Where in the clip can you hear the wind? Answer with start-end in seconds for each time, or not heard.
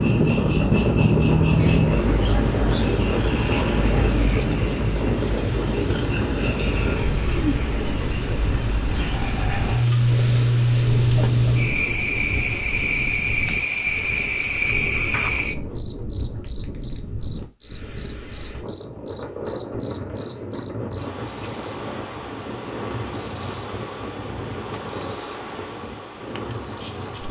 0.0-27.2.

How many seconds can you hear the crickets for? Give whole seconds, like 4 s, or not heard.
27 s.